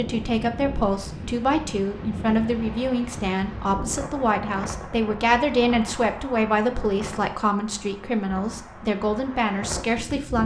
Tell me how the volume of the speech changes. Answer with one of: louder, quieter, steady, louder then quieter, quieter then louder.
steady.